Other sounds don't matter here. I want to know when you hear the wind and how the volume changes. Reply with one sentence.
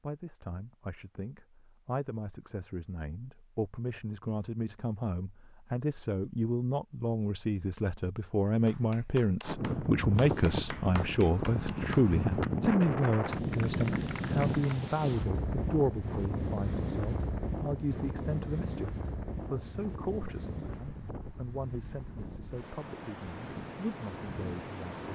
You can hear the wind from 9.4 to 25.0 s, getting quieter.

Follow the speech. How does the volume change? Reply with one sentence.
The loudness of the speech goes up, then down.